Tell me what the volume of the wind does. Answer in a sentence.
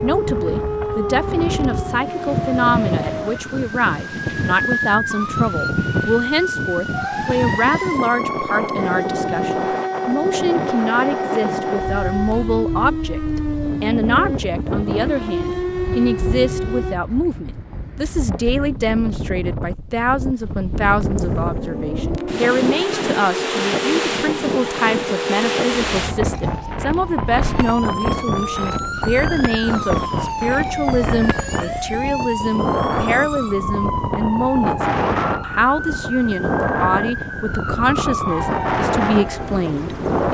The volume of the wind stays about the same.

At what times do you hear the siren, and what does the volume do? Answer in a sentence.
You can hear the siren from 0.0 to 16.9 s, at a steady volume; and from 21.0 to 40.3 s, at a steady volume.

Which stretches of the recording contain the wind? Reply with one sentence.
You can hear the wind from 0.0 to 40.3 s.